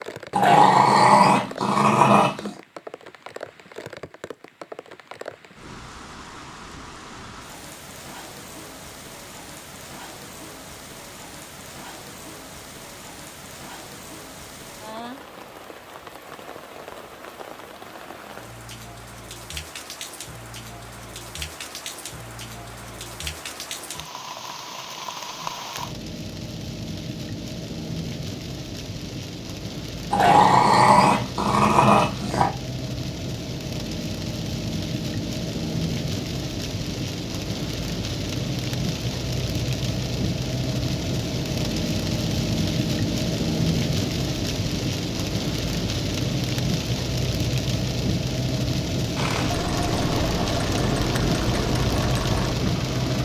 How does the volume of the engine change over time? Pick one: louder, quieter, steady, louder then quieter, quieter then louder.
steady.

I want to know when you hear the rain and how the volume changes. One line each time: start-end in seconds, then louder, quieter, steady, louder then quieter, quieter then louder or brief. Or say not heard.
0.0-53.2 louder.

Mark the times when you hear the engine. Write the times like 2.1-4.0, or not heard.
49.1-53.2.